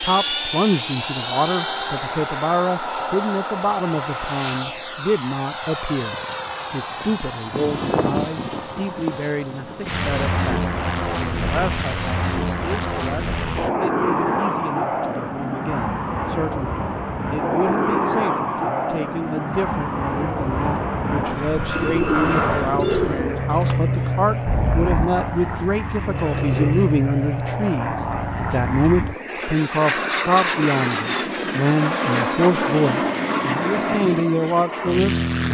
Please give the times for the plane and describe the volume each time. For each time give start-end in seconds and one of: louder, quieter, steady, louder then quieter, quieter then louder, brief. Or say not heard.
0.0-35.5 steady.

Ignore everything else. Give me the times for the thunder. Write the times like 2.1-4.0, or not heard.
not heard.